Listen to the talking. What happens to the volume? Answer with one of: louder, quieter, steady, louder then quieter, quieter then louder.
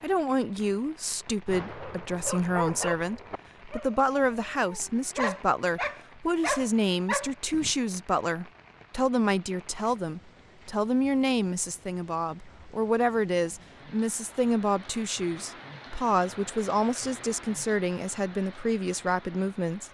steady.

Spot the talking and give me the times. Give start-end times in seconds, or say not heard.
0.0-19.8.